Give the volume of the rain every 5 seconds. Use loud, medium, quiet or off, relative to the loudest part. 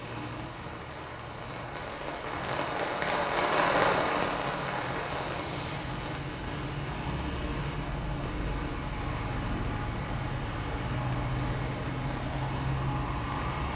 loud, medium, quiet.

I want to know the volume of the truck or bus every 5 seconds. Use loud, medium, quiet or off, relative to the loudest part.
medium, loud, loud.